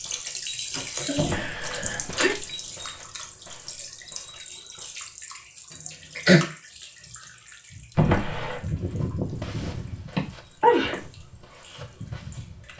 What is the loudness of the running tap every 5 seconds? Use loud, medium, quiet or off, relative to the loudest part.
loud, loud, medium.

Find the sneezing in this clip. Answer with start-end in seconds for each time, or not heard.
1.1-2.4, 5.7-6.5, 10.2-11.0.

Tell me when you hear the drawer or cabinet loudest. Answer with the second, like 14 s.
8 s.